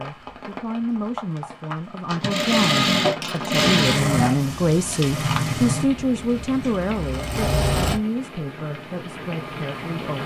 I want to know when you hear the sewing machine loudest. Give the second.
3 s.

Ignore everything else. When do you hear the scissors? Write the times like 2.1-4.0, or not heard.
4.9-5.6.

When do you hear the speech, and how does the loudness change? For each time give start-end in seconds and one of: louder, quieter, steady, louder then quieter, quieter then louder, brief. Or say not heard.
0.0-10.2 louder then quieter.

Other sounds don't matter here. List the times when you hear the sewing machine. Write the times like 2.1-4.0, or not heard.
2.0-8.0.